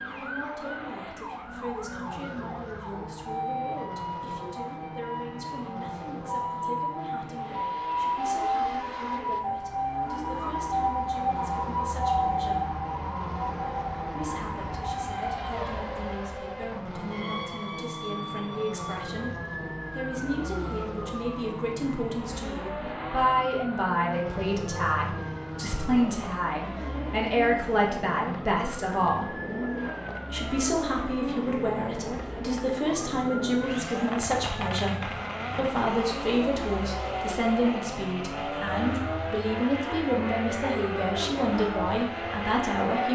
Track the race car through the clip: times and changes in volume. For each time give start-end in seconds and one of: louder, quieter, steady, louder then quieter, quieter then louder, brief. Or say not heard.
0.0-43.1 louder.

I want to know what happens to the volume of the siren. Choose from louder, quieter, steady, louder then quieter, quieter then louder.
quieter.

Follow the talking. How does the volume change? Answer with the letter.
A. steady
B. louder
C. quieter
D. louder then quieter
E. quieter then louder
B.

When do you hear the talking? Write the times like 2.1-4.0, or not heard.
0.1-12.8, 14.1-29.4, 30.3-43.1.